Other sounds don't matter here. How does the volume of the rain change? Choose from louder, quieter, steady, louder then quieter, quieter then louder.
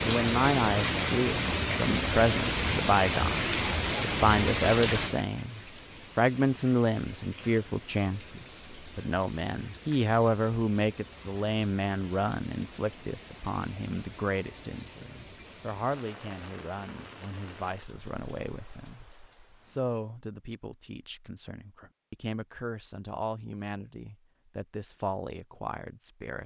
quieter.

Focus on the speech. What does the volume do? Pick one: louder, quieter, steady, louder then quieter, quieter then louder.
quieter.